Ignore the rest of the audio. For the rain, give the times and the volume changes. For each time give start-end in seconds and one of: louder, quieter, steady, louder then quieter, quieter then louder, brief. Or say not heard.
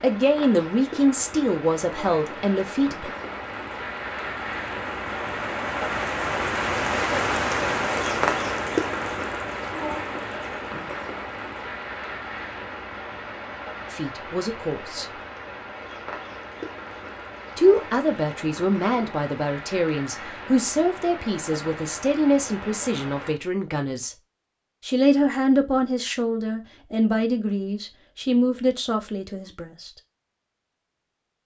0.0-23.4 louder then quieter.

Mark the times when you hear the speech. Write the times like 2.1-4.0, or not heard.
0.0-3.1, 13.9-15.1, 17.6-24.1, 24.9-29.9.